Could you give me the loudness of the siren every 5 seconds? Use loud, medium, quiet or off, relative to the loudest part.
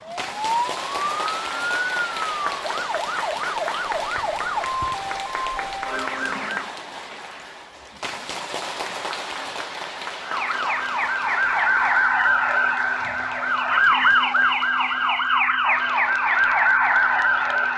medium, medium, loud, loud.